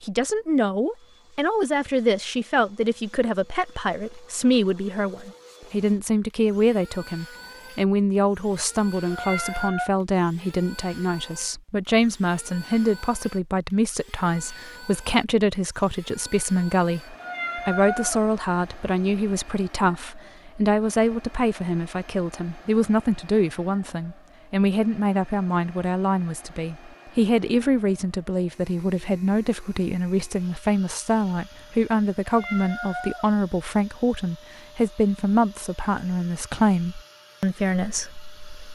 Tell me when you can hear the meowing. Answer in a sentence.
You can hear the meowing from 9.1 to 9.9 s, from 17.2 to 18.2 s and from 32.2 to 33.3 s.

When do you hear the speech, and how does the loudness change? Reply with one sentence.
The speech can be heard from 0.0 to 38.7 s, at a steady volume.